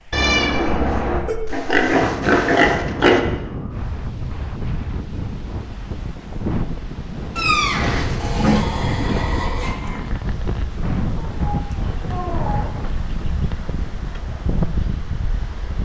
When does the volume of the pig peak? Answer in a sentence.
The volume of the pig peaks at 2 seconds.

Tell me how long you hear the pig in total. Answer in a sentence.
You can hear the pig for 4 seconds altogether.